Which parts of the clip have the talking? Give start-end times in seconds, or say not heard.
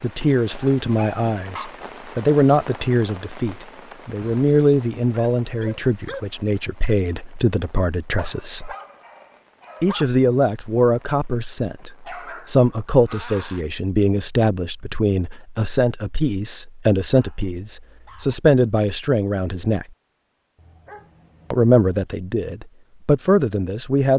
0.0-8.8, 9.8-19.9, 21.5-24.1.